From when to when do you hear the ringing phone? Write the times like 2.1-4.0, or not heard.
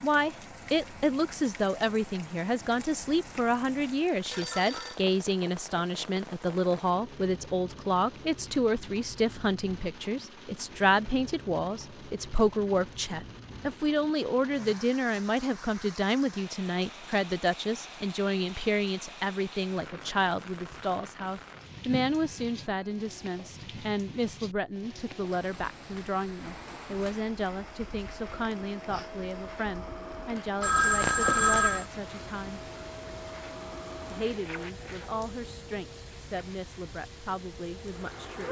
4.3-5.0, 21.9-22.9, 30.6-31.9.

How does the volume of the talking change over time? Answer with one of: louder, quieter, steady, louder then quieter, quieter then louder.
quieter.